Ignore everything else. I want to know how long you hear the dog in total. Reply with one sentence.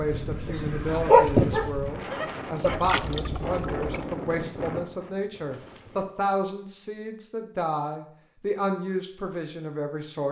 The dog can be heard for 3 seconds in total.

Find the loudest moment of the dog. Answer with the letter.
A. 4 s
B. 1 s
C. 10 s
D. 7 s
B.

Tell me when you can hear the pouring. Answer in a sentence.
You can hear the pouring from 2.6 to 3.9 s.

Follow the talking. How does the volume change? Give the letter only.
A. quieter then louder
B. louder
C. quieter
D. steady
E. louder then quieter
D.